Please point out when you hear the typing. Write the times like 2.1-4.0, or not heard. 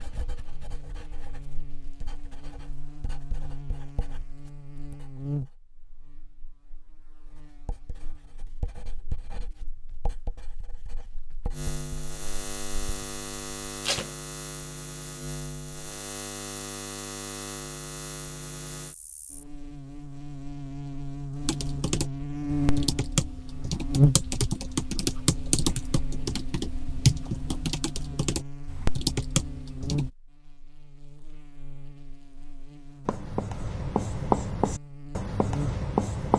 21.4-30.1.